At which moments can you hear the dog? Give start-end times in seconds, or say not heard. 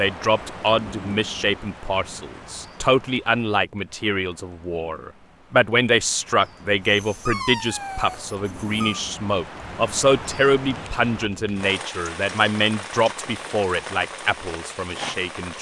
6.8-9.1.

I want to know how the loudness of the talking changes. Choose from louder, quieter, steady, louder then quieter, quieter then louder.
steady.